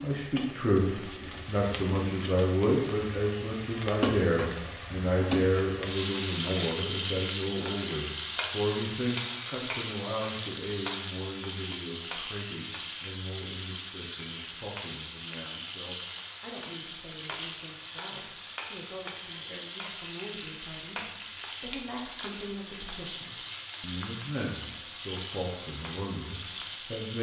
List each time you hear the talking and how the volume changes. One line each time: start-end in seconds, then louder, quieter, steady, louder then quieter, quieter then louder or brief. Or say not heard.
0.0-27.1 quieter then louder.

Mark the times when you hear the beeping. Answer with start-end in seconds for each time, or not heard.
not heard.